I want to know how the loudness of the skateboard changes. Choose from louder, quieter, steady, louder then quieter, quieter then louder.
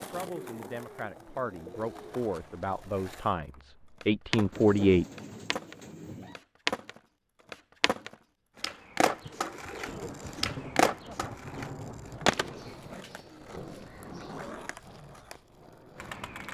louder then quieter.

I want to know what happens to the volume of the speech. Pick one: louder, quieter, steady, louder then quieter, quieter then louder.
louder.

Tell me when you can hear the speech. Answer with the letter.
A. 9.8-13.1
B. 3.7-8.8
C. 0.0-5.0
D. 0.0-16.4
C.